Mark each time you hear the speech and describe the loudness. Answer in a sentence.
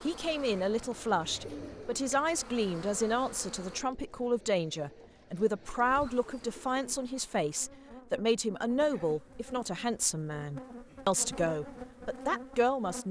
The speech can be heard from 0.0 to 13.0 s, at a steady volume.